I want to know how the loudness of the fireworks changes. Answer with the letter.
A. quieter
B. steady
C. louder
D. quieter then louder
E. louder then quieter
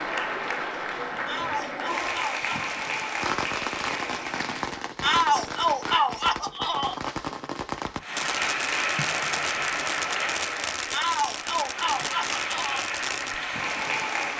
B.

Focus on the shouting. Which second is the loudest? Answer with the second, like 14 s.
5 s.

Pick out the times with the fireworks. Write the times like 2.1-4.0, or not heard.
3.1-13.3.